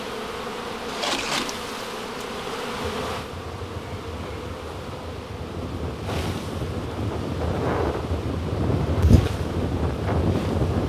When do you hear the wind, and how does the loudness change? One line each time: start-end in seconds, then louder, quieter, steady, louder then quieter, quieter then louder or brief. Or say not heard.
2.8-10.8 louder.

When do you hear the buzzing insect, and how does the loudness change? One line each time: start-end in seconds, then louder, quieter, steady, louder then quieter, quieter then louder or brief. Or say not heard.
0.0-10.8 quieter.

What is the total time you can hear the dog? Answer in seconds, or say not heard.
not heard.